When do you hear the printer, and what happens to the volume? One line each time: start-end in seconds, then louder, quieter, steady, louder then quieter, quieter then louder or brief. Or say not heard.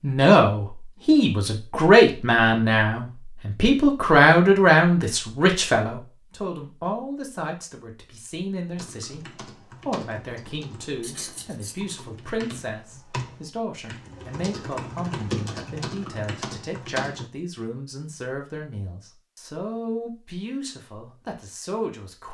not heard.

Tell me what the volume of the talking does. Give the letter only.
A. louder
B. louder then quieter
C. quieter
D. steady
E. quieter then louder
C.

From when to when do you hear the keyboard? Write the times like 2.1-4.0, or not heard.
8.8-17.3.